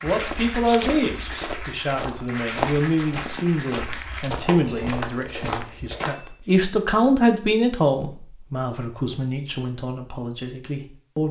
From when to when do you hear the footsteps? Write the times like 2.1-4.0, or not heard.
0.1-6.1.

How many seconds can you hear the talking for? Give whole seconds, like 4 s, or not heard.
11 s.